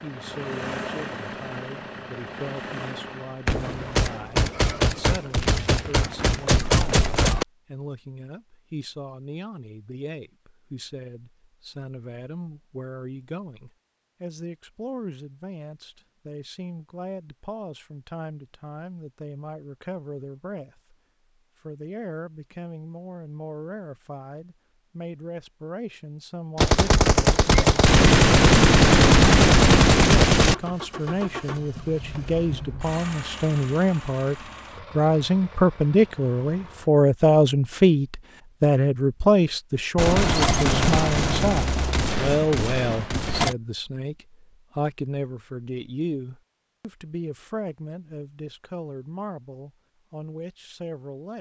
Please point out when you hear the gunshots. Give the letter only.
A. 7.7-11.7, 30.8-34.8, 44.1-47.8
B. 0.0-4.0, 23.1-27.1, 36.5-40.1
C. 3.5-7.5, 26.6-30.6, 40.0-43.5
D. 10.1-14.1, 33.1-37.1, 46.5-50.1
C.